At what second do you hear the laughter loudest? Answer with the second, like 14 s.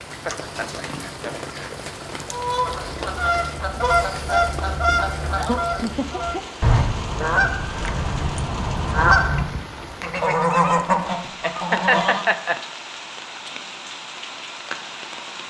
12 s.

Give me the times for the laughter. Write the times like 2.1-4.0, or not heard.
0.2-1.7, 5.3-6.4, 11.4-12.6.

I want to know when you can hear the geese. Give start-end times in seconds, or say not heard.
2.3-12.2.